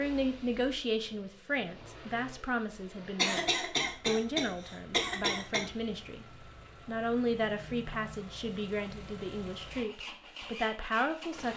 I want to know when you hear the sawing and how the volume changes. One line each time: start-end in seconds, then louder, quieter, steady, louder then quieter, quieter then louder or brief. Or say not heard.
not heard.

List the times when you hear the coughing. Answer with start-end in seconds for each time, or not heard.
3.1-5.7.